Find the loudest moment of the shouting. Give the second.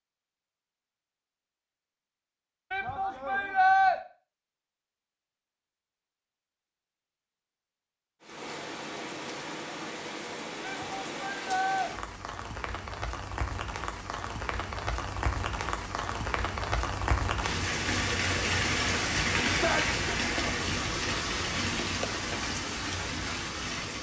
4 s.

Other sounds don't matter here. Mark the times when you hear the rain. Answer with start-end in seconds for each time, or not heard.
8.2-23.9.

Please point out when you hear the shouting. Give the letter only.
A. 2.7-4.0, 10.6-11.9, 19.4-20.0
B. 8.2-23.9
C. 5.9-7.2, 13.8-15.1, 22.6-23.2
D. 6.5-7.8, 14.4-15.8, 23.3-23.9
A.